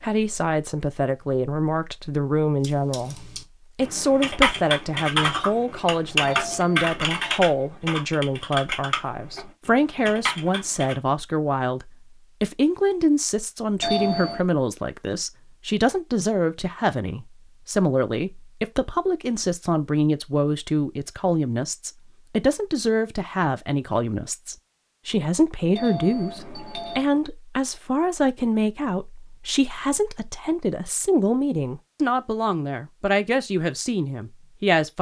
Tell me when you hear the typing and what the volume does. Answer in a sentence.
You can hear the typing from 2.6 to 10.9 s, getting quieter.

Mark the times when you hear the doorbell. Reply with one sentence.
The doorbell can be heard from 6.2 to 7.3 s, from 13.8 to 14.4 s and from 25.8 to 27.1 s.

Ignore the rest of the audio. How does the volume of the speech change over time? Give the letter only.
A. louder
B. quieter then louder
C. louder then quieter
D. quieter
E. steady
E.